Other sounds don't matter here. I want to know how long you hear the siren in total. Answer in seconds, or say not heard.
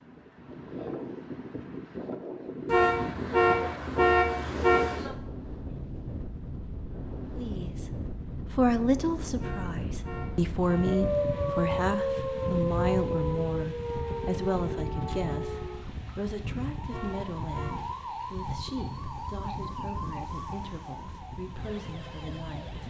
12 s.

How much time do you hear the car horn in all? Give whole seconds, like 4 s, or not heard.
5 s.